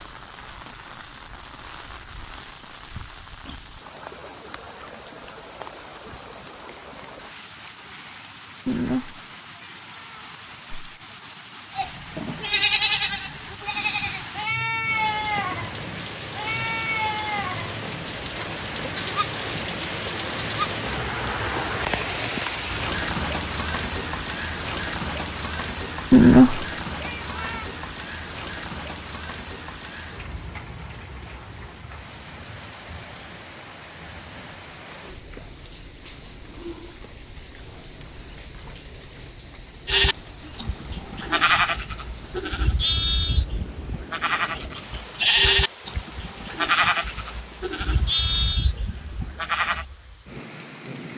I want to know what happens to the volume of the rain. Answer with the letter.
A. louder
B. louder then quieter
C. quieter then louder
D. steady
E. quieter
B.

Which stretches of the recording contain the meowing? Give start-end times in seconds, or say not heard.
8.7-10.9, 26.1-27.6.